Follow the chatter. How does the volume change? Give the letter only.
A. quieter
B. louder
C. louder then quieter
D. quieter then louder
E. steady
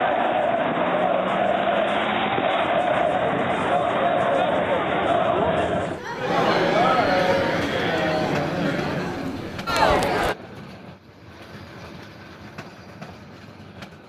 E.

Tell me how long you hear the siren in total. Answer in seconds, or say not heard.
not heard.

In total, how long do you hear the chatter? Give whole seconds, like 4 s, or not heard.
10 s.